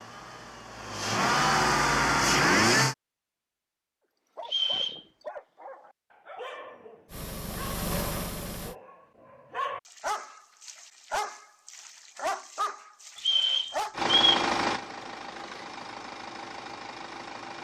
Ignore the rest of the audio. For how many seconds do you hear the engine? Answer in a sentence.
You can hear the engine for 8 seconds altogether.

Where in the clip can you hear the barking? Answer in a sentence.
The barking can be heard from 4.3 to 13.9 s.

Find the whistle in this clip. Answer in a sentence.
The whistle can be heard from 4.5 to 5.0 s and from 13.2 to 14.4 s.